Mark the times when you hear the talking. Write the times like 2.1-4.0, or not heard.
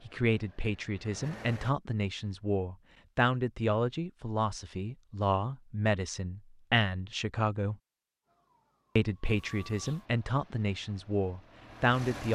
0.1-7.8, 8.9-12.3.